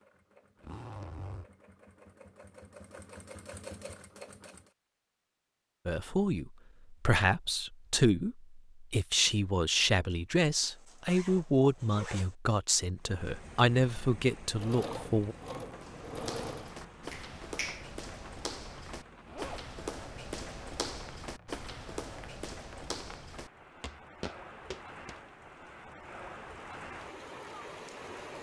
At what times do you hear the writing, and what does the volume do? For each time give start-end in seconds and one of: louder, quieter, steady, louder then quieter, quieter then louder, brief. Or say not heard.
not heard.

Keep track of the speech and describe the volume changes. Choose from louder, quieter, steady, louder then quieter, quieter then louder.
steady.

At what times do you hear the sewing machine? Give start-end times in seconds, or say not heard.
0.0-4.8, 14.5-16.8.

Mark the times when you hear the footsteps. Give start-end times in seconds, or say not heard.
15.7-25.1.